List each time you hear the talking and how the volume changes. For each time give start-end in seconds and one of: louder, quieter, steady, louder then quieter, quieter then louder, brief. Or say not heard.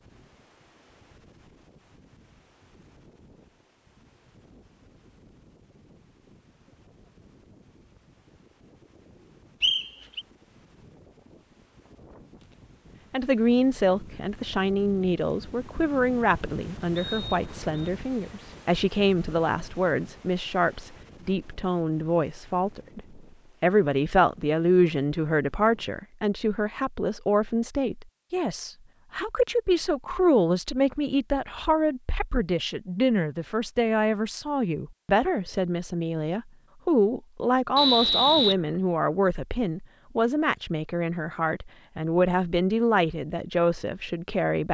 13.1-44.6 steady.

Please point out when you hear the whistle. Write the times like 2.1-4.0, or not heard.
9.6-10.2, 16.9-17.9, 37.8-38.5.